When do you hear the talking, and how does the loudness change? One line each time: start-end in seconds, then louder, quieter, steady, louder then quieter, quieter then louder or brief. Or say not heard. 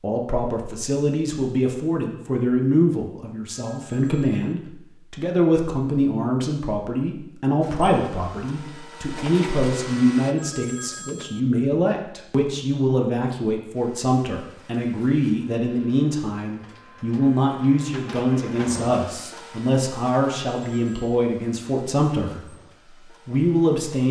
0.0-22.5 steady
23.2-24.0 brief.